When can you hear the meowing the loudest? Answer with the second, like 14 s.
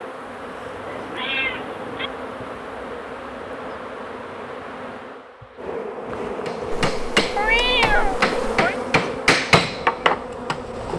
8 s.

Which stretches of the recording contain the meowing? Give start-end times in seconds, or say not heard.
0.8-2.1, 6.7-8.8.